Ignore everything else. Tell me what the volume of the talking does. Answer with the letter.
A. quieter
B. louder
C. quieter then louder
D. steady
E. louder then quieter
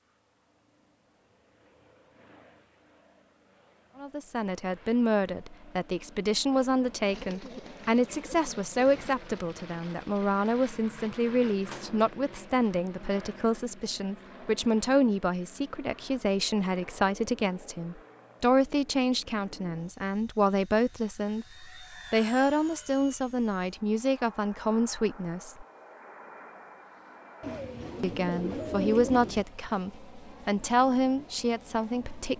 D.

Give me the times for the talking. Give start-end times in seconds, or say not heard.
4.0-25.6, 28.0-32.3.